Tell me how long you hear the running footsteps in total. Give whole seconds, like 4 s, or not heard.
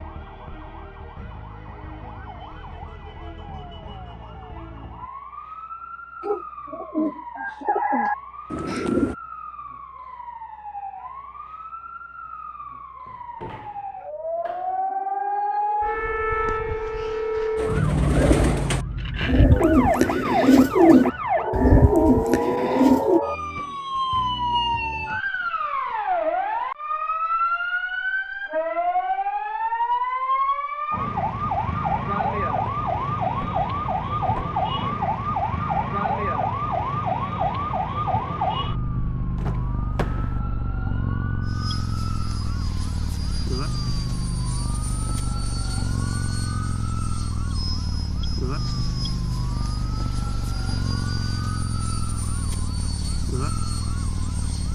not heard.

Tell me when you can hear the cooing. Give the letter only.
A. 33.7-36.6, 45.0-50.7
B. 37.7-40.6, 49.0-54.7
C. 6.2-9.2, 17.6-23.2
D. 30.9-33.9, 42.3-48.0
C.